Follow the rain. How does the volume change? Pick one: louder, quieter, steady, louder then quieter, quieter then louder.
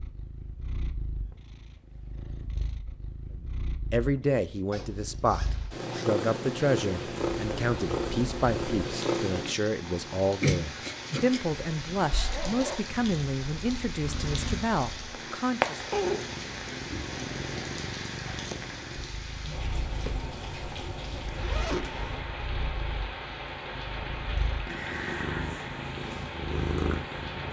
steady.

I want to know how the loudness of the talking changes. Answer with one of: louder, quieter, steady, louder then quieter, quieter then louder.
steady.